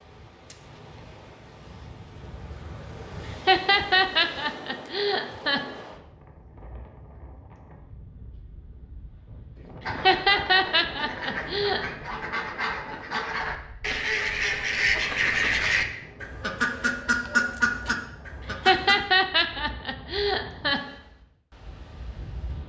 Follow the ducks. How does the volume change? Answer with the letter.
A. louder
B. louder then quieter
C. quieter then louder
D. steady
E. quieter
A.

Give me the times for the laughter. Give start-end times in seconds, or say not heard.
3.2-5.6, 9.8-11.8, 18.4-20.8.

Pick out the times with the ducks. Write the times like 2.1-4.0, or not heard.
9.8-18.9.